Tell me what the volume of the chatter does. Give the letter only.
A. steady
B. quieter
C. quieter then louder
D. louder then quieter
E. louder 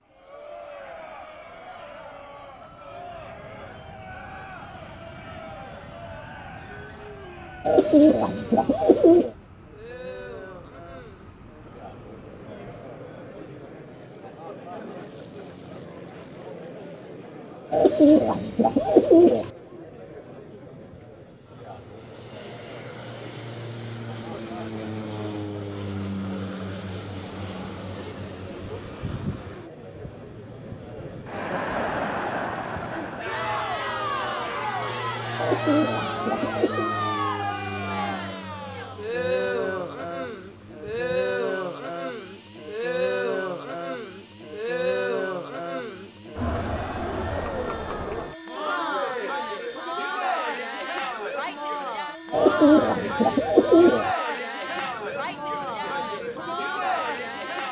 E.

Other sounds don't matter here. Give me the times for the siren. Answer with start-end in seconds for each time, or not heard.
not heard.